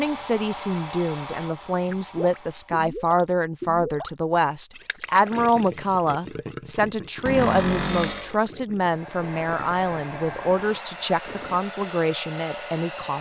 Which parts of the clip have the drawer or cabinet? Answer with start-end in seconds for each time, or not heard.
7.2-8.4.